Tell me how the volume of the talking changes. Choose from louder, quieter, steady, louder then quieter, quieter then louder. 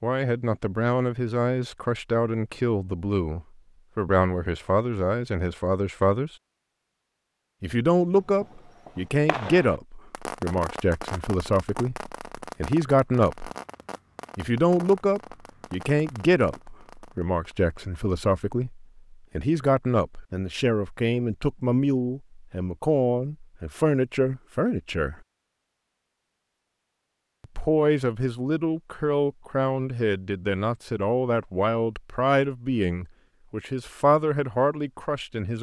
steady.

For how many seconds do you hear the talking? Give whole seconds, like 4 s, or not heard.
31 s.